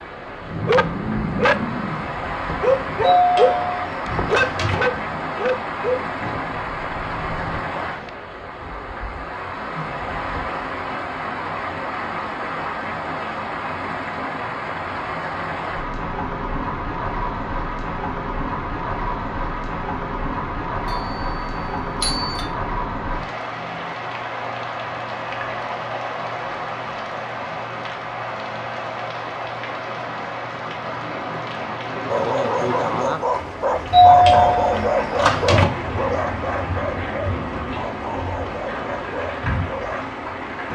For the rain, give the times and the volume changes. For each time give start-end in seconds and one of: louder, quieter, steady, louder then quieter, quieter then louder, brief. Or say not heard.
0.0-40.7 steady.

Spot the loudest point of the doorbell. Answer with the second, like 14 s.
34 s.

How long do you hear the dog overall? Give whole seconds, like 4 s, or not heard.
16 s.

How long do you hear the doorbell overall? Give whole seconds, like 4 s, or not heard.
5 s.